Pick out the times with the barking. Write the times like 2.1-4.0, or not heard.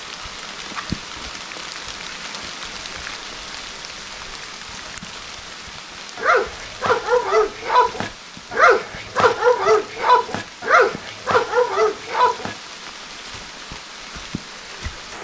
6.2-12.6.